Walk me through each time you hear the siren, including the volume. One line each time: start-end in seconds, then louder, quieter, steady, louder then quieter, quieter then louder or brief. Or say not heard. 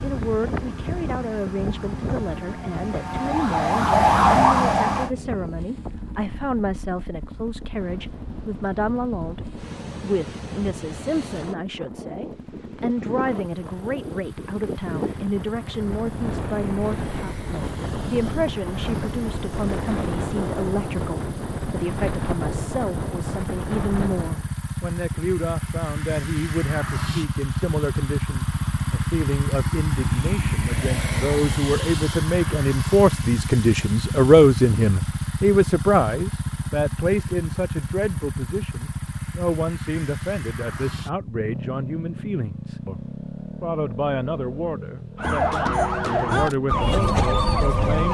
0.0-5.2 louder
45.1-48.1 brief.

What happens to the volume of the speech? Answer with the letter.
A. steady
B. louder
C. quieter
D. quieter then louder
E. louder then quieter
E.